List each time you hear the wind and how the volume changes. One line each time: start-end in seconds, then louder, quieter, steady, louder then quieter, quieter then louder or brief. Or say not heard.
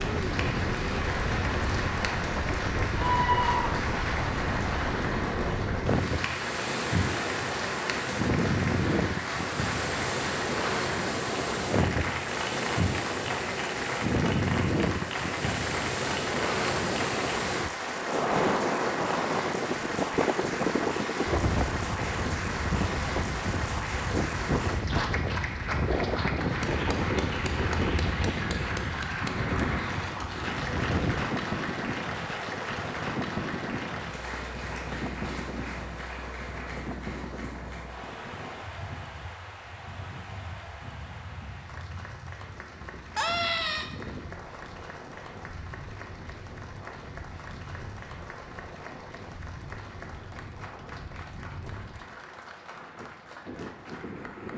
0.0-54.5 quieter.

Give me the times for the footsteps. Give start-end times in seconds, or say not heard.
not heard.